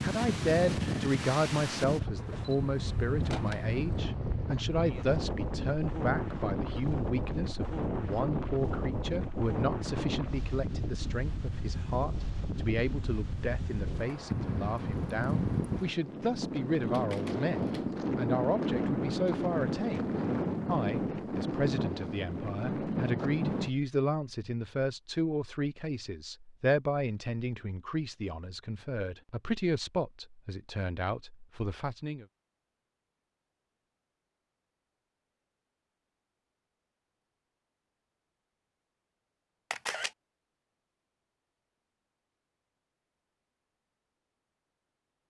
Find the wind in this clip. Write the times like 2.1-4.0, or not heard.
0.0-23.7.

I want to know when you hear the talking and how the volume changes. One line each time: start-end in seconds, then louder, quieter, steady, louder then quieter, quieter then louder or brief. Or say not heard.
0.0-32.2 steady.